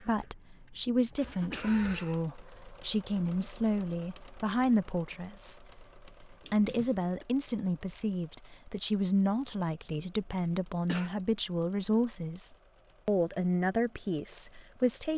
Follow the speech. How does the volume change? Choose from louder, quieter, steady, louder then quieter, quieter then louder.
steady.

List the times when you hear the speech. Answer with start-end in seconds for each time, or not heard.
0.1-5.6, 6.2-15.1.